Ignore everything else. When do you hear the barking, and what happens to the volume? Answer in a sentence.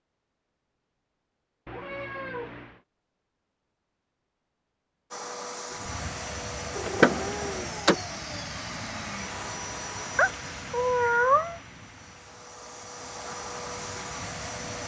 You can't hear the barking here.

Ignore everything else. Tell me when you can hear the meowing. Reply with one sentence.
The meowing can be heard from 1.6 to 2.8 s, from 5.8 to 7.8 s and from 10.2 to 11.6 s.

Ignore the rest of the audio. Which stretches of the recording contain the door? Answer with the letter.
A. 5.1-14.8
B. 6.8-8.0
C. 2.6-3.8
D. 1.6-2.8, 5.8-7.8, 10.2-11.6
B.